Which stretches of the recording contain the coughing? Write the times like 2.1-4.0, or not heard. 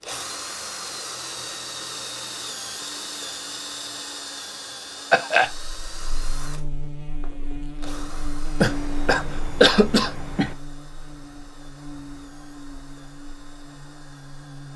5.1-5.5, 8.6-10.6.